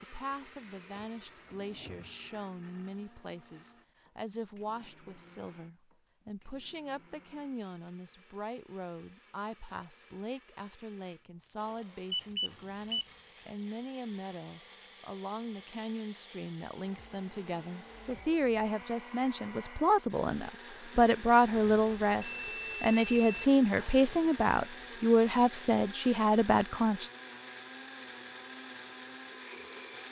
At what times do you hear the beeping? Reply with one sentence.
You can hear the beeping from 12.1 to 13.1 s and from 21.5 to 23.4 s.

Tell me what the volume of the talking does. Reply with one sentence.
The loudness of the talking goes up.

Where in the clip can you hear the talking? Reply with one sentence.
You can hear the talking from 0.0 to 27.1 s.